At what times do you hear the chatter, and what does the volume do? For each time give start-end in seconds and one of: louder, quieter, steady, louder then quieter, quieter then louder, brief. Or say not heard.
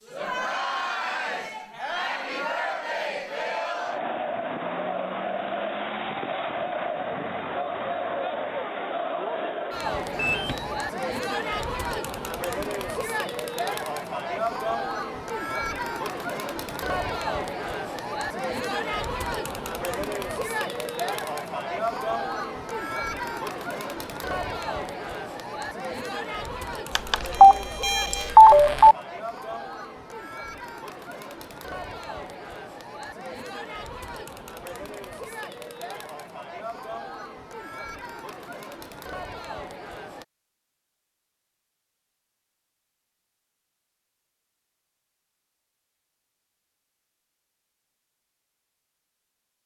0.1-40.2 quieter.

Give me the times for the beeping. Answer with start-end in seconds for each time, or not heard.
10.1-10.8, 26.9-28.9.